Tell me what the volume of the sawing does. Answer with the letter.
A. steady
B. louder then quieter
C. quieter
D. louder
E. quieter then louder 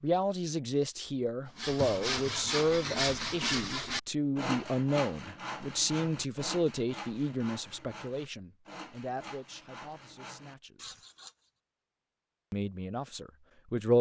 C.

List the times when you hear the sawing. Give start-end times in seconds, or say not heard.
1.6-11.3.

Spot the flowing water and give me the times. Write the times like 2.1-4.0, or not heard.
not heard.